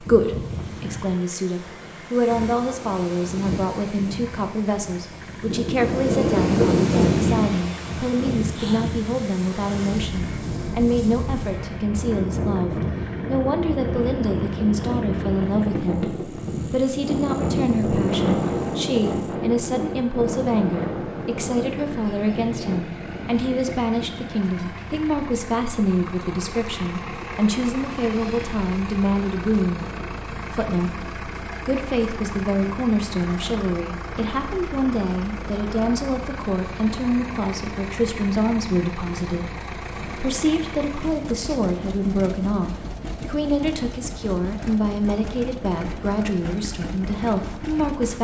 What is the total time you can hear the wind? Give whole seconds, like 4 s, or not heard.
48 s.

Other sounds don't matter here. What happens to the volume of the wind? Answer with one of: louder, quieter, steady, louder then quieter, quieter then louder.
quieter.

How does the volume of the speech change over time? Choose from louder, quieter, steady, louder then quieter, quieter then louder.
steady.